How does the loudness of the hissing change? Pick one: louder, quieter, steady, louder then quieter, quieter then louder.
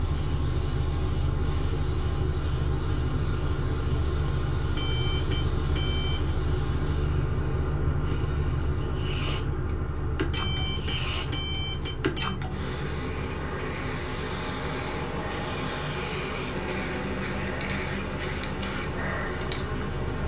louder.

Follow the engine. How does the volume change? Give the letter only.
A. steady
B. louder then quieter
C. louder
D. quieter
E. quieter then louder
D.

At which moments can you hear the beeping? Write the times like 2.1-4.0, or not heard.
4.8-6.3, 10.3-12.4.